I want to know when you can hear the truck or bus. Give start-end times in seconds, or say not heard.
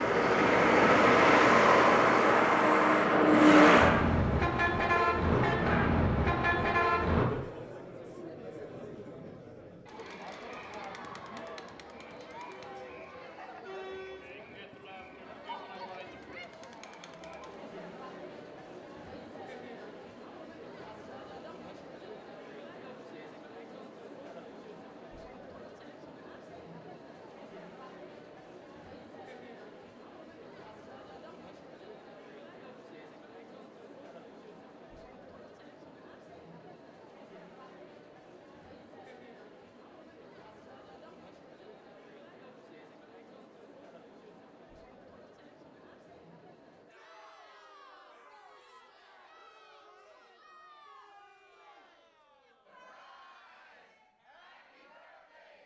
0.0-7.2.